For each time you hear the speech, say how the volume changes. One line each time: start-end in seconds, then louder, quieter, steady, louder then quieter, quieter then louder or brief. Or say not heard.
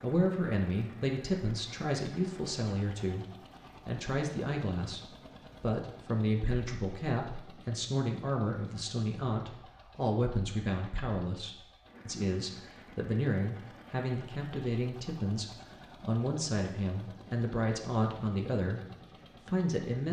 0.0-20.0 steady.